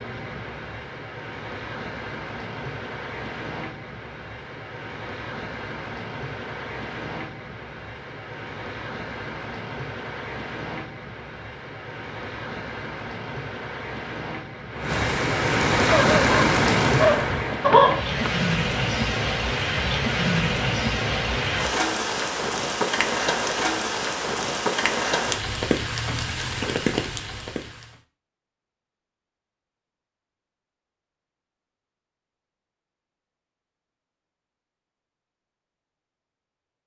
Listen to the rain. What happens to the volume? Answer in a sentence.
The loudness of the rain goes up.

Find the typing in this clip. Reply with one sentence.
The typing can't be heard in this clip.